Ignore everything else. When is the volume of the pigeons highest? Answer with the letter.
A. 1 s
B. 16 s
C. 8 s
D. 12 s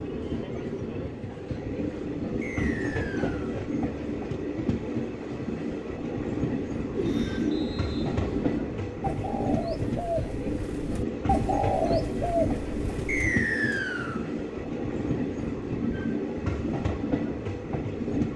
D.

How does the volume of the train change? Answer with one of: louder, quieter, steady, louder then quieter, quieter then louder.
steady.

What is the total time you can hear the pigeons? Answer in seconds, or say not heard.
7 s.